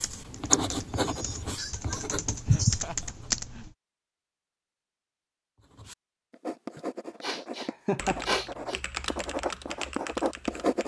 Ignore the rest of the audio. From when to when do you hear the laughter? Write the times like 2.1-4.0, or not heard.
2.5-3.6, 7.6-8.2.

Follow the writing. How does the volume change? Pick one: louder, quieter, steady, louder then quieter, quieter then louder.
quieter then louder.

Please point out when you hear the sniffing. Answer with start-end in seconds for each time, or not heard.
0.5-2.8, 6.8-8.8.